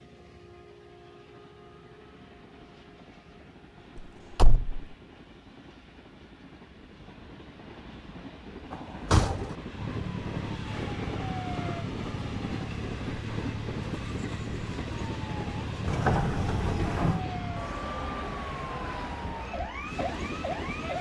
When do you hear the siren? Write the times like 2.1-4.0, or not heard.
9.8-20.9.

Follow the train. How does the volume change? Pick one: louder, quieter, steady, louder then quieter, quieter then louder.
louder.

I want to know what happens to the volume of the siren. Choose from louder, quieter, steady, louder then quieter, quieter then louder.
steady.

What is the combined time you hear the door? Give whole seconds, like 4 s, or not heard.
3 s.